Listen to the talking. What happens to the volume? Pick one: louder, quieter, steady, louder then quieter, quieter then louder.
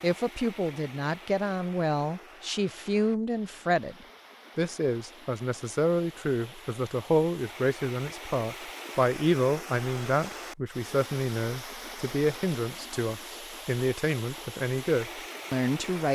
steady.